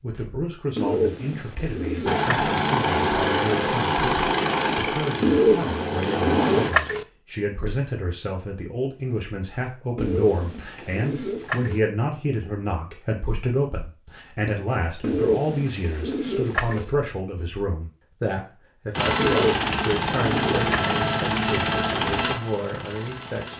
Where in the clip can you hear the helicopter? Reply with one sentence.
The helicopter can be heard from 2.0 to 6.7 s and from 18.9 to 23.5 s.